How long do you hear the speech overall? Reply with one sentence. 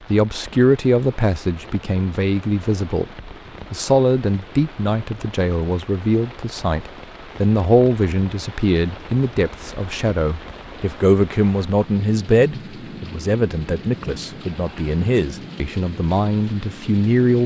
You can hear the speech for 17 seconds altogether.